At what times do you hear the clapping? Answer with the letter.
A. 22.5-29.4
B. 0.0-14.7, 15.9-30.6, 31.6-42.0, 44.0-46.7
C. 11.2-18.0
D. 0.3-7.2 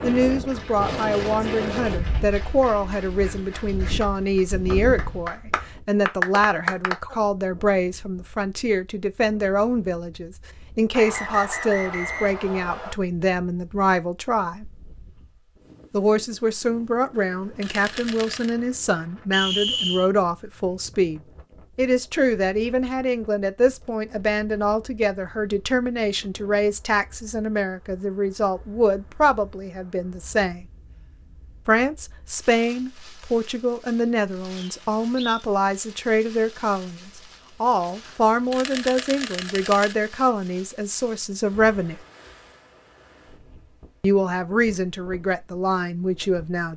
D.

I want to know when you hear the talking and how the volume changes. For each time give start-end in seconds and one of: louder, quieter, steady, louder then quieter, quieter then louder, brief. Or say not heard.
0.0-14.7 steady
15.9-30.6 steady
31.6-42.0 steady
44.0-46.7 brief.